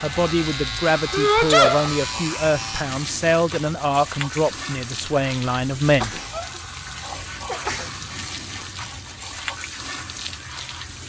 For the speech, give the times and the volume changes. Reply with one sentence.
You can hear the speech from 0.0 to 6.2 s, at a steady volume.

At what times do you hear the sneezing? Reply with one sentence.
The sneezing can be heard from 1.1 to 1.9 s, from 6.0 to 6.6 s and from 7.5 to 7.9 s.